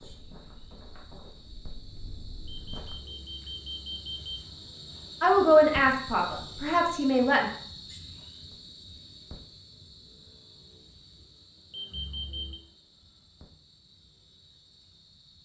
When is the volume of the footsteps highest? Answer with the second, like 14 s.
3 s.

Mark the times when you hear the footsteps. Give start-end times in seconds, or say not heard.
0.0-3.1.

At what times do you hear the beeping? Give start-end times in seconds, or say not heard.
2.7-4.5, 11.7-12.6.